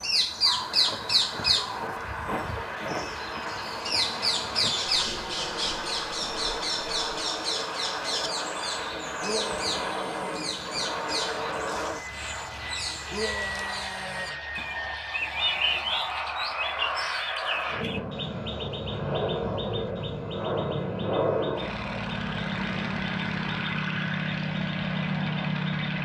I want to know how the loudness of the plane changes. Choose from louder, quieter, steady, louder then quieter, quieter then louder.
louder.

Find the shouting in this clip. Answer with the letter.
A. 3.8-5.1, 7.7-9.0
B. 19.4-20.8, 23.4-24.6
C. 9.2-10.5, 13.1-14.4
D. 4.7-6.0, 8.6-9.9
C.